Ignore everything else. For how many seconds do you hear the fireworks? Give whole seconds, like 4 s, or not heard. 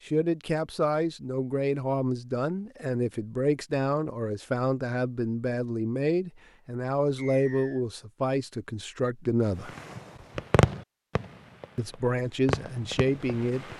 4 s.